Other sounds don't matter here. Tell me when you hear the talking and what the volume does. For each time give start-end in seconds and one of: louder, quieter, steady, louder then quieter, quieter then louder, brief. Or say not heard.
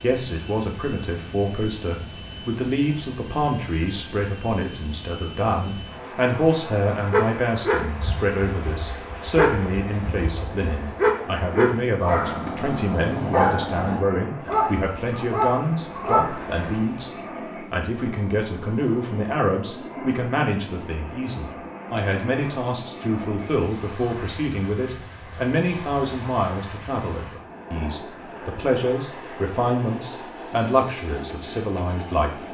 0.0-32.4 steady.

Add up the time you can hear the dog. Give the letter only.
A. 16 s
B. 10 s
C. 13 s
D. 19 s
B.